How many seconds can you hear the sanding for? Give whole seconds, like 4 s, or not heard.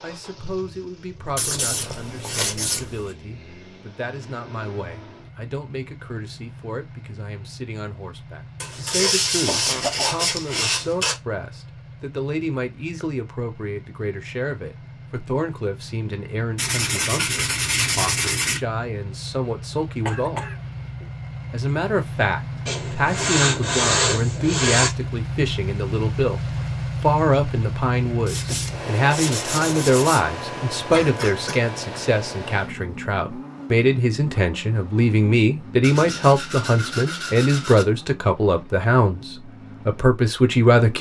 13 s.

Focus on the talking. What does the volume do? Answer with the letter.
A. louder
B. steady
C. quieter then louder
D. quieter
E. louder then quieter
A.